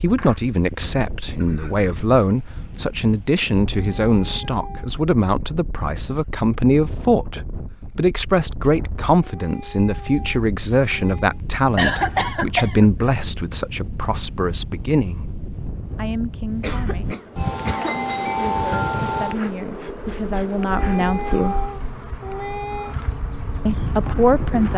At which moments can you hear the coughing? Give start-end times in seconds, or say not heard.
0.1-1.9, 11.8-13.2, 16.6-18.0.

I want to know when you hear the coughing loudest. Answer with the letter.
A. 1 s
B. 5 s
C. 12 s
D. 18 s
C.